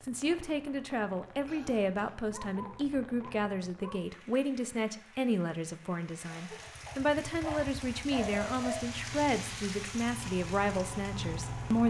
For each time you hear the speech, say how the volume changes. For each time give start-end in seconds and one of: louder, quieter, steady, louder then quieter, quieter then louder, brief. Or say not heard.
0.0-11.8 steady.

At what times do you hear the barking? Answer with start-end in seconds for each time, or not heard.
2.2-4.0, 6.8-8.8.